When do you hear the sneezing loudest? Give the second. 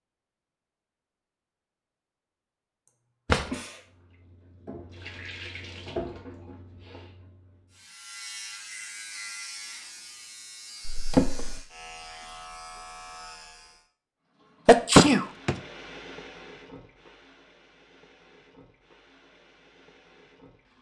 15 s.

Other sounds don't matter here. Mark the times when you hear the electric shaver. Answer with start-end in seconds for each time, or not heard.
7.7-13.8.